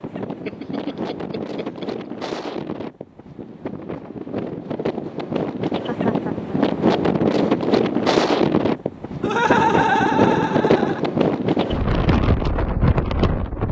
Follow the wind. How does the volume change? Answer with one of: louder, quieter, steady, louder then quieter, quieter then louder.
louder.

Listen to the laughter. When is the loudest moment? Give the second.
10 s.